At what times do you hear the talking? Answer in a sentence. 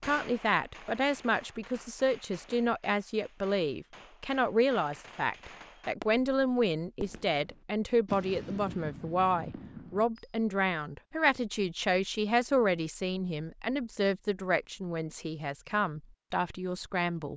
The talking can be heard from 0.1 to 17.3 s.